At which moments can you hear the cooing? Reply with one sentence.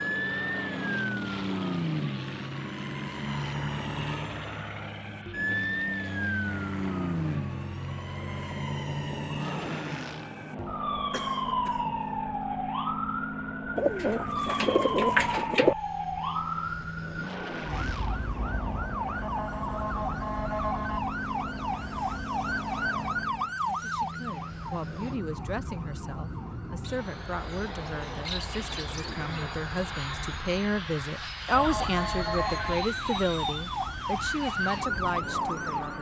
You can hear the cooing from 13.8 to 15.8 s and from 26.8 to 29.6 s.